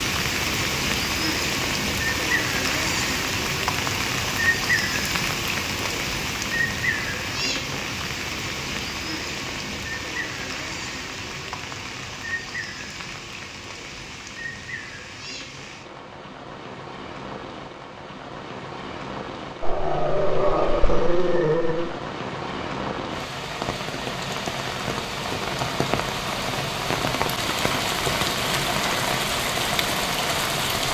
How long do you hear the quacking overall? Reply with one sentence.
The quacking can't be heard in this clip.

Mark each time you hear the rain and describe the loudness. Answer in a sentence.
The rain can be heard from 0.0 to 30.9 s, getting quieter then louder.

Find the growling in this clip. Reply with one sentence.
You can hear the growling from 19.6 to 21.9 s.